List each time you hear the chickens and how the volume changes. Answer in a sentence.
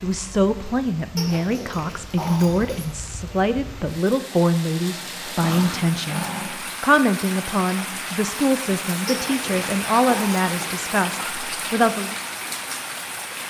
The chickens can't be heard in this clip.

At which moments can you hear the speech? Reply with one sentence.
You can hear the speech from 0.0 to 12.2 s.